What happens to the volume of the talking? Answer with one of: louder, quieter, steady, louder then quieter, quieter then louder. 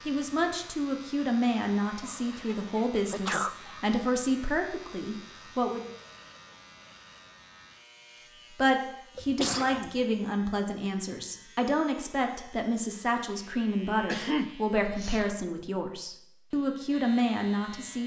steady.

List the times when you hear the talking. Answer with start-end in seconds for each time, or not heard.
0.1-5.8, 8.5-18.0.